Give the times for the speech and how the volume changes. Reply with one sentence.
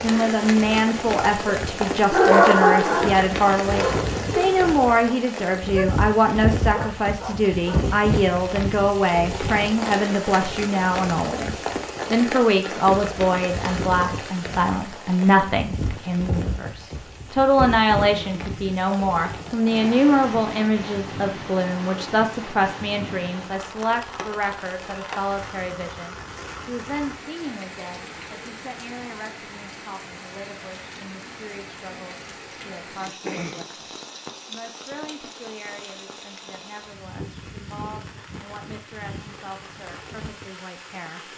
The speech can be heard from 0.0 to 41.3 s, getting quieter.